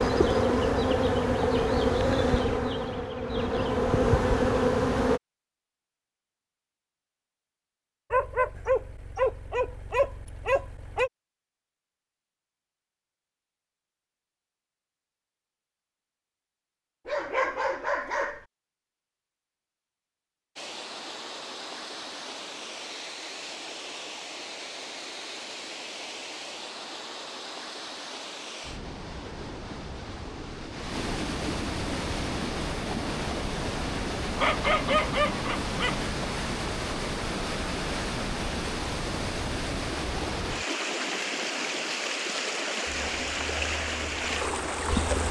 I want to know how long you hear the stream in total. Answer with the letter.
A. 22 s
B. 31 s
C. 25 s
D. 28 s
C.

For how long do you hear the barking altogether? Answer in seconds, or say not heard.
6 s.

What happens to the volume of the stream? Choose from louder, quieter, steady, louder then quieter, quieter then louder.
louder.